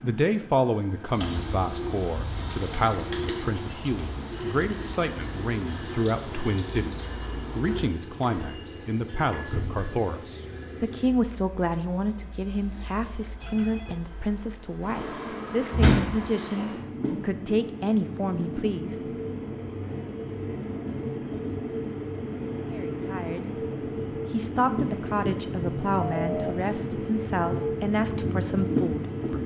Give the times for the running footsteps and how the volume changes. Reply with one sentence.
You can't hear the running footsteps here.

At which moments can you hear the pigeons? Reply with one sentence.
The pigeons can be heard from 1.1 to 7.9 s.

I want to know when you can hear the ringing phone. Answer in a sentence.
The ringing phone can be heard from 4.3 to 5.0 s, from 13.4 to 14.0 s and from 26.1 to 26.6 s.